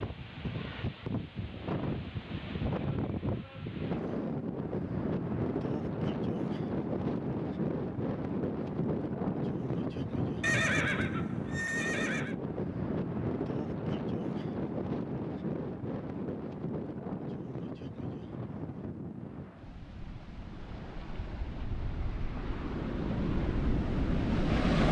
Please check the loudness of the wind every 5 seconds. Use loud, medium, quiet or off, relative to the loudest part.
loud, loud, loud, medium, loud.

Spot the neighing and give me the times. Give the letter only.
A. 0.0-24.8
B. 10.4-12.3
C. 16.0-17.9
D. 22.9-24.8
B.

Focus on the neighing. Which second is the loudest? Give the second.
11 s.